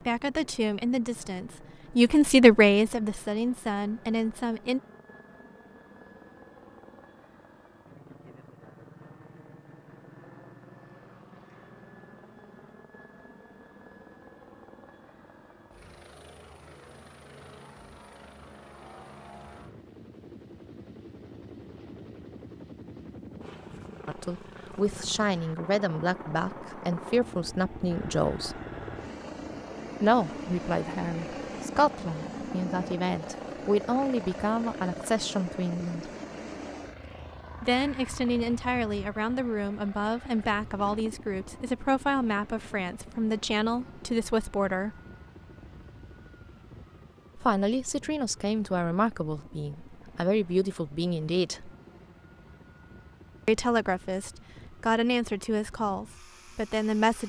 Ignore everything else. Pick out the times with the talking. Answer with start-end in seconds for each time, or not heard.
0.1-4.8, 24.1-28.6, 30.0-36.1, 37.6-45.0, 47.4-51.7, 53.5-57.2.